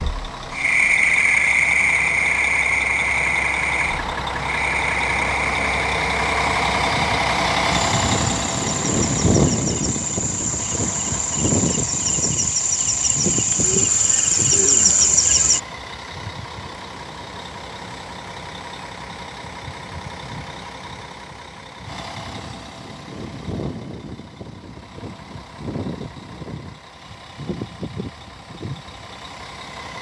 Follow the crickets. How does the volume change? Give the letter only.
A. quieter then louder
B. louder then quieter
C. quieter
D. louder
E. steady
A.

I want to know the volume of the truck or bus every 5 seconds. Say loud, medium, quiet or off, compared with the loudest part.
medium, loud, medium, quiet, quiet, quiet.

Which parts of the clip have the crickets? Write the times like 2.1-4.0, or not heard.
0.0-15.6.